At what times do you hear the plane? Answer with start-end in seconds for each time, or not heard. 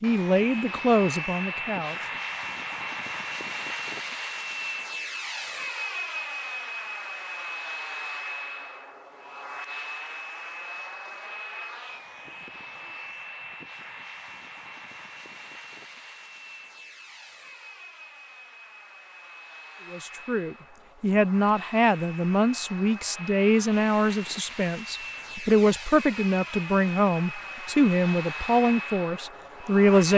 0.0-30.1.